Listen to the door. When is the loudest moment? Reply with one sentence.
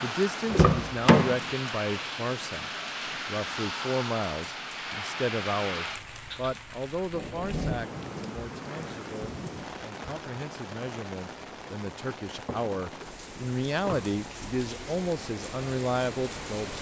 The volume of the door peaks at 1 second.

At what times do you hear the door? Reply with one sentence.
You can hear the door from 0.5 to 1.4 s and from 12.4 to 14.1 s.